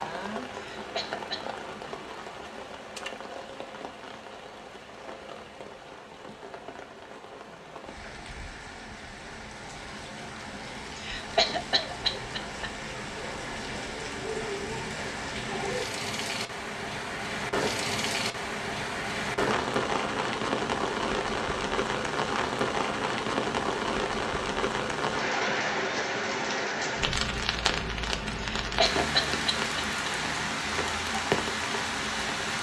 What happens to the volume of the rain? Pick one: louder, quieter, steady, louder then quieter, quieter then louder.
louder.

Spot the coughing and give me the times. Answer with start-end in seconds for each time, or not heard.
0.5-1.4, 10.9-12.7, 28.4-30.1.